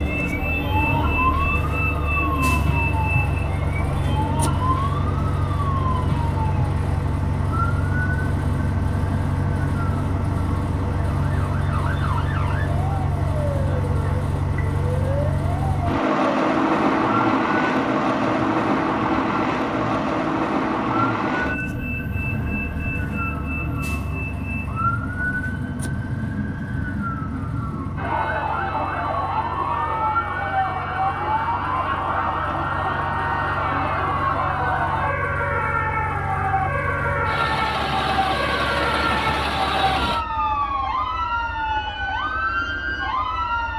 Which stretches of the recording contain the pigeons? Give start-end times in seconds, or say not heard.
not heard.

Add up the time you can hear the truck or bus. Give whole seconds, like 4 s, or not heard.
40 s.